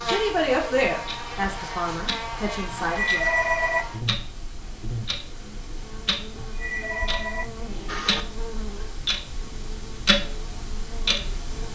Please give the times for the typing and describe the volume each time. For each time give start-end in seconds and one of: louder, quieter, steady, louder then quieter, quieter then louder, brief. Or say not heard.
not heard.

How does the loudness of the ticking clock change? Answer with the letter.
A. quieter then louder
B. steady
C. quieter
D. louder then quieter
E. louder
E.